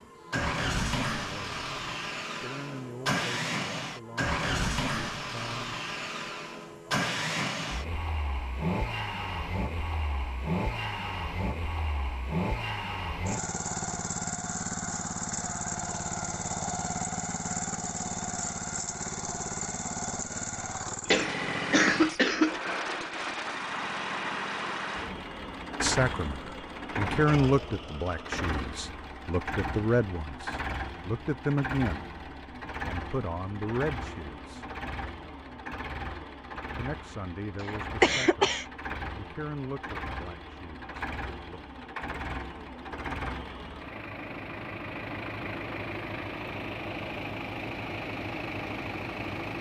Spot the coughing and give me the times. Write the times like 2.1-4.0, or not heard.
21.1-22.6, 38.0-38.6.